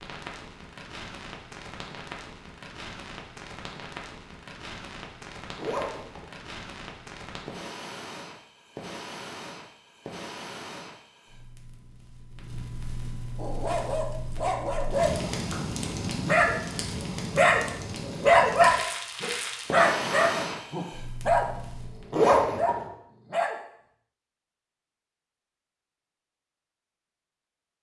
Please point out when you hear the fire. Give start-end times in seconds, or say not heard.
0.0-22.1.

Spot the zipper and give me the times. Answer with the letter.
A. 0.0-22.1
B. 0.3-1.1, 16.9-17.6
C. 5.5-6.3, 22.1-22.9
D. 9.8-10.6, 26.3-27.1
C.